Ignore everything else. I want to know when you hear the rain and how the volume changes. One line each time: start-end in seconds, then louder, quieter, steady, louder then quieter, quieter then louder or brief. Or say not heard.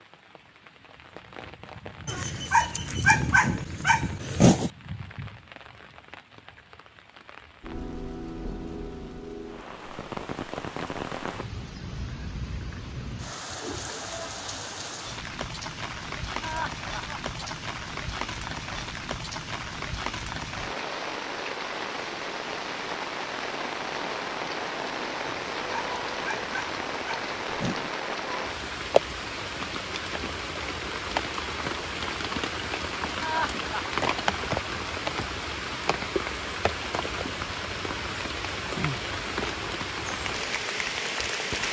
0.0-41.6 louder.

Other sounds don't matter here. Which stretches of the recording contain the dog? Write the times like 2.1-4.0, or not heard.
2.0-4.7, 25.2-27.9.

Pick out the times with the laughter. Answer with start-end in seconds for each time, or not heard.
16.4-17.3, 33.2-34.0.